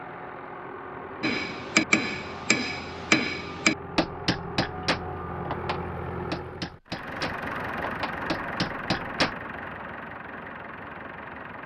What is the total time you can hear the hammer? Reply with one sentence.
You can hear the hammer for 8 seconds altogether.